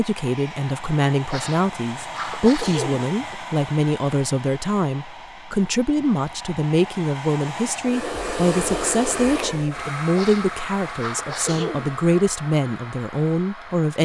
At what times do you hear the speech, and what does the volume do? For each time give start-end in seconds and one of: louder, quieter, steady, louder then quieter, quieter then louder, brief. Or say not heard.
0.0-14.0 steady.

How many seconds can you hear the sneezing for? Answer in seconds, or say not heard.
4 s.